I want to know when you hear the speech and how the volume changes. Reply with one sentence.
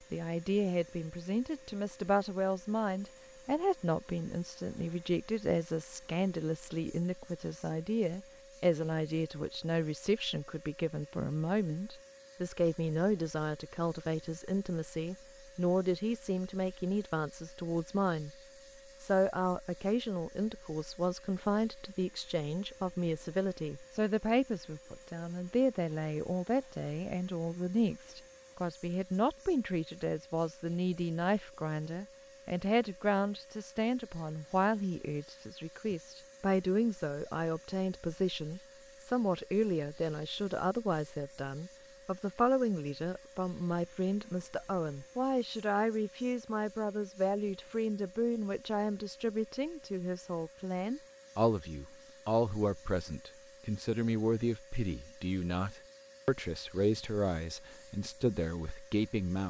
The speech can be heard from 0.1 to 18.3 s, at a steady volume; and from 18.9 to 59.4 s, at a steady volume.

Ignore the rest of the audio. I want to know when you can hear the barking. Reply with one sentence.
You can't hear the barking here.